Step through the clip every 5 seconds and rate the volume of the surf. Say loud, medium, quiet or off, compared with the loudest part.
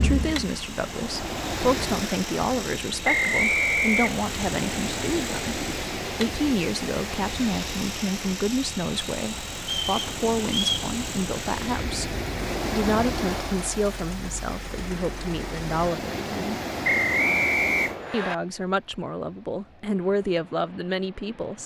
loud, loud, loud, loud, quiet.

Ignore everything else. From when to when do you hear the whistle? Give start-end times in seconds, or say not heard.
3.0-4.2, 9.6-10.8, 16.8-18.4.